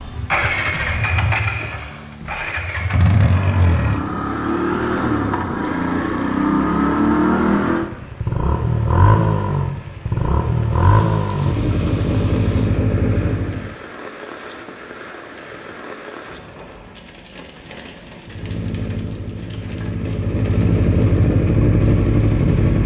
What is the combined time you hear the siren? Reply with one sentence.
The siren can't be heard in this clip.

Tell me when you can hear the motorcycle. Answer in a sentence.
The motorcycle can be heard from 0.0 to 13.8 s and from 18.2 to 22.8 s.